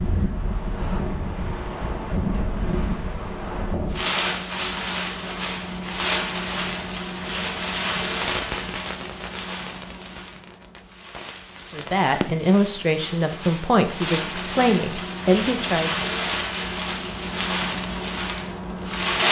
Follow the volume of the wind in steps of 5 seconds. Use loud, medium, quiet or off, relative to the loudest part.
loud, loud, medium, loud.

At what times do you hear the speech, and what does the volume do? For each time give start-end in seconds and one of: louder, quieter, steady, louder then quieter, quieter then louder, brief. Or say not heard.
11.7-16.0 steady.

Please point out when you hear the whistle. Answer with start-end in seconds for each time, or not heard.
not heard.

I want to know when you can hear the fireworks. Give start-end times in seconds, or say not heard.
8.1-12.5.